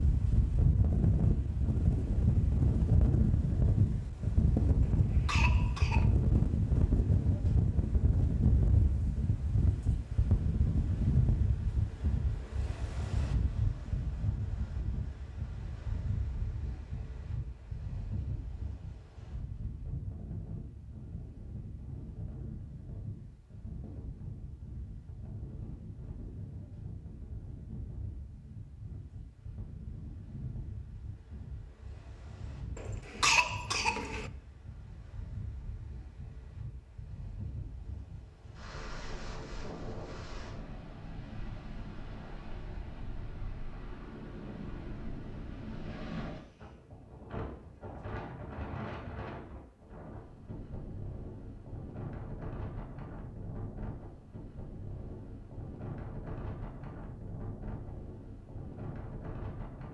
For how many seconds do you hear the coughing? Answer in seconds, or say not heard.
3 s.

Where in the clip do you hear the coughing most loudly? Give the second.
33 s.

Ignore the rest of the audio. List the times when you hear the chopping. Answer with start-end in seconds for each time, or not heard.
not heard.